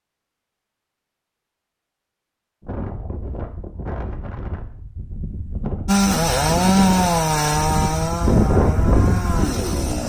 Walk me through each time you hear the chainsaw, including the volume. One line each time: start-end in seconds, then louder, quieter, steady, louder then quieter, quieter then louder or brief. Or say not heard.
5.8-10.0 quieter.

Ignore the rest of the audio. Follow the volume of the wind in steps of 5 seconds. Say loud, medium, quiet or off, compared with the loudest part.
medium, loud.